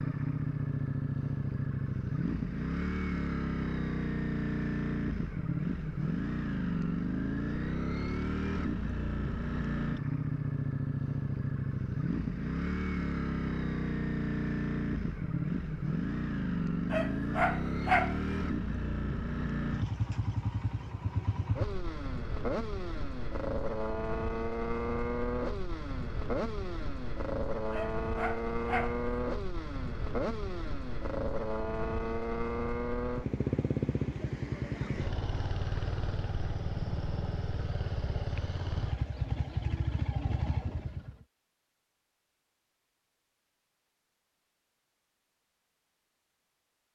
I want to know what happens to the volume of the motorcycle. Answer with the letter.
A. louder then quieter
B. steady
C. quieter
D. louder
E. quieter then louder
B.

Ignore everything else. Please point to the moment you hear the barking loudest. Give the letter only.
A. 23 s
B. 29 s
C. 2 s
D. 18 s
D.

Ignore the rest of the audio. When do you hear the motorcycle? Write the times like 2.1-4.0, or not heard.
0.0-41.2.